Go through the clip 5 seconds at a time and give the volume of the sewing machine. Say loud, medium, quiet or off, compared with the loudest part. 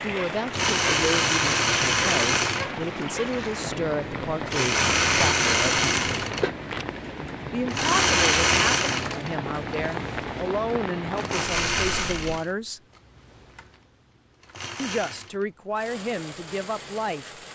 loud, loud, medium, quiet.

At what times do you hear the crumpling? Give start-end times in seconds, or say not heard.
6.1-6.8.